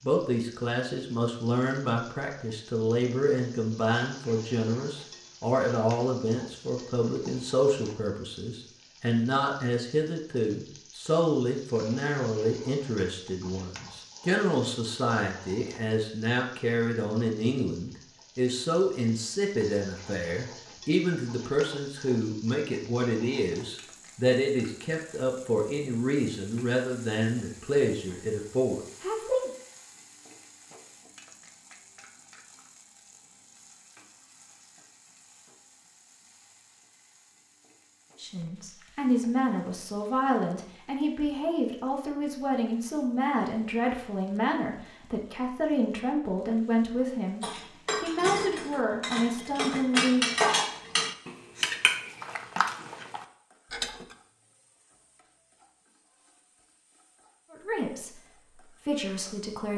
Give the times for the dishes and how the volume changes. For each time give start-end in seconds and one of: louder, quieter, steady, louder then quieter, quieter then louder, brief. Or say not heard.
47.4-54.1 louder then quieter.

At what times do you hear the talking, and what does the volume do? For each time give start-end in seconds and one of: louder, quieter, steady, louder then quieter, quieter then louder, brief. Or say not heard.
0.0-29.5 steady
38.1-50.2 steady
57.5-59.7 brief.